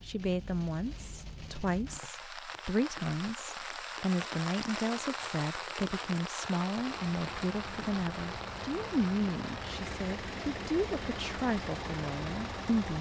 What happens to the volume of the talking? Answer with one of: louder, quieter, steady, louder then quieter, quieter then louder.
steady.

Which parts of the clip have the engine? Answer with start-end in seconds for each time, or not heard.
6.8-12.9.